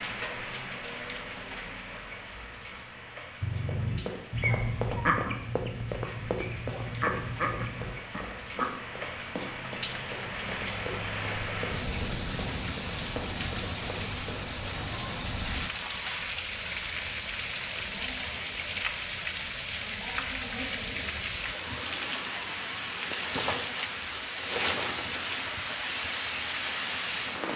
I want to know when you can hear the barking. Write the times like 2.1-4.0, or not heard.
not heard.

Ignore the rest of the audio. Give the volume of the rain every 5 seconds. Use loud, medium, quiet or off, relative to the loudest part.
medium, medium, loud, loud, loud, loud.